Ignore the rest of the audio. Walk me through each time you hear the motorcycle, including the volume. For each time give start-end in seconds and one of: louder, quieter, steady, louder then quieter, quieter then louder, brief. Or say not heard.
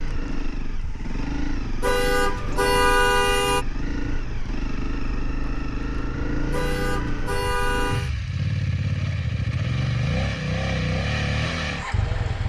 0.0-12.4 louder.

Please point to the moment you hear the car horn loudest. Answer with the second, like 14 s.
3 s.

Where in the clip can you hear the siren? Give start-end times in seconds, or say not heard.
not heard.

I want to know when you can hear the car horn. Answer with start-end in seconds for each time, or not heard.
1.8-3.6, 6.5-8.1.